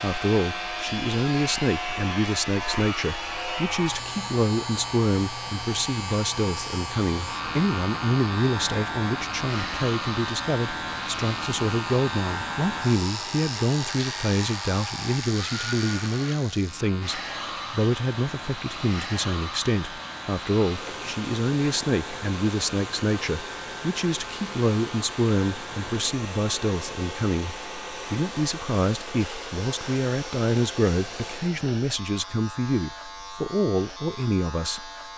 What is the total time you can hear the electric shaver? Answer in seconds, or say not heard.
35 s.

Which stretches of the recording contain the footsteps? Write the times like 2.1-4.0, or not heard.
not heard.